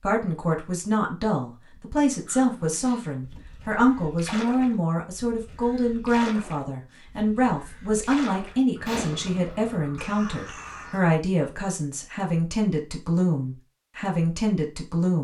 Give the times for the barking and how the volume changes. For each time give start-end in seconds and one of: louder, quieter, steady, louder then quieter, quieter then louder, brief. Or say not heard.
not heard.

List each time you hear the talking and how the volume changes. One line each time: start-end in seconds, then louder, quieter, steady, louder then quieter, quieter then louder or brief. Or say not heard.
0.0-15.1 steady.